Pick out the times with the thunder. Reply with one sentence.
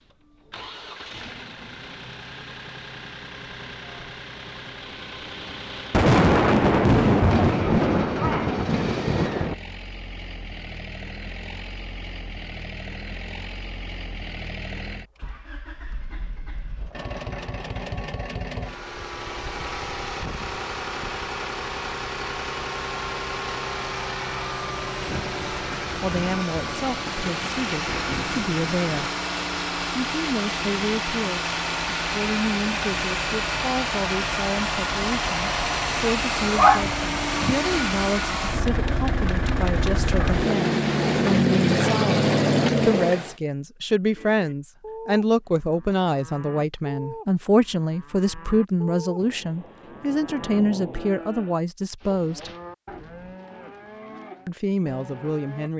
You can hear the thunder from 5.9 to 9.6 s, from 25.1 to 29.1 s and from 49.2 to 51.1 s.